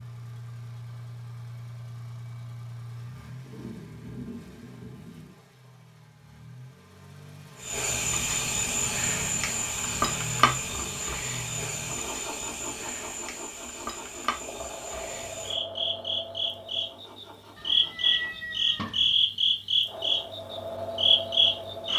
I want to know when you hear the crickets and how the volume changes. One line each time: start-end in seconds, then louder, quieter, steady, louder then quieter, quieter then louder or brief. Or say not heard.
7.6-21.9 quieter then louder.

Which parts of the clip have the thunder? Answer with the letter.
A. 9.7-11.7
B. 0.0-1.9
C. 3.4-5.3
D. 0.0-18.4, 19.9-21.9
C.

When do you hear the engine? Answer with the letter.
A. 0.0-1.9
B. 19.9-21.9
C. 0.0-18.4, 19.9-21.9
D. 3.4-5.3
C.